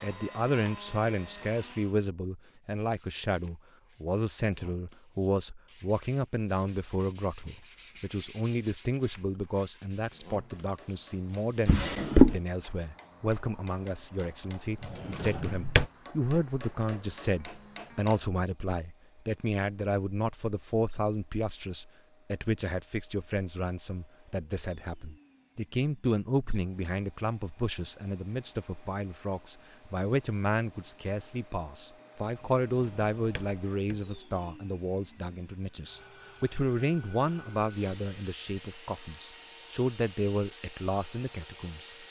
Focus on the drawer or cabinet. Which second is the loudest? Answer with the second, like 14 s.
12 s.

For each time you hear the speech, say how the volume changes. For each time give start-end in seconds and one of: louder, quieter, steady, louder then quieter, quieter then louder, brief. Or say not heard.
0.0-42.0 steady.